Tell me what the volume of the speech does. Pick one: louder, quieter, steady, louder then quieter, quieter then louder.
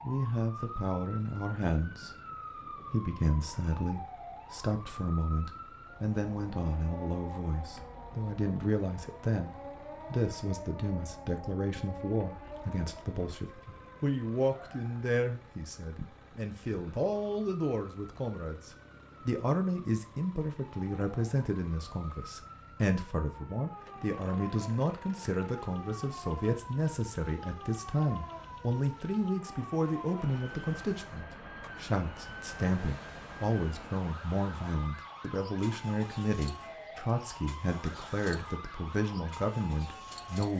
steady.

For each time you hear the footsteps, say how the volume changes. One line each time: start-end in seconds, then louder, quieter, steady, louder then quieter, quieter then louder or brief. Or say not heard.
not heard.